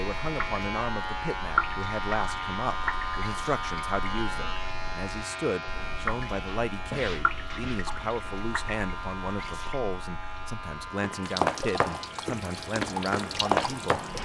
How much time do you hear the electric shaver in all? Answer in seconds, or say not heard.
14 s.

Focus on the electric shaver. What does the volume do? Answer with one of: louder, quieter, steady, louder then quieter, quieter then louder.
quieter.